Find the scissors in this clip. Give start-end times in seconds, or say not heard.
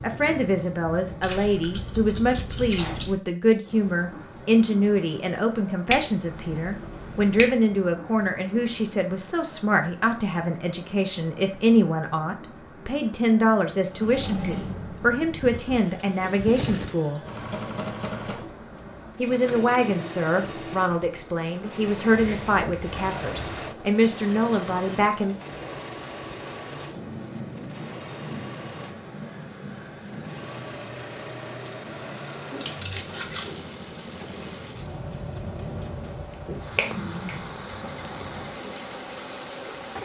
1.2-3.1, 22.1-23.7, 32.5-33.5.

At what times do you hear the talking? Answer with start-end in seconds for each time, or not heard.
0.0-17.2, 19.1-25.4.